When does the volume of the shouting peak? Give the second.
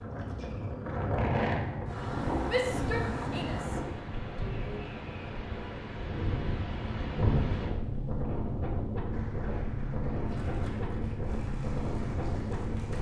3 s.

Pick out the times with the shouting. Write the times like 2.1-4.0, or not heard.
2.5-4.9.